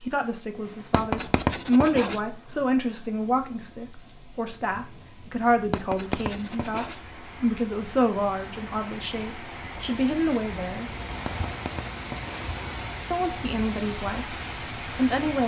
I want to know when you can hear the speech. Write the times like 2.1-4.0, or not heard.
0.0-10.9, 13.1-15.4.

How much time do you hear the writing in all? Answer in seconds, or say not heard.
4 s.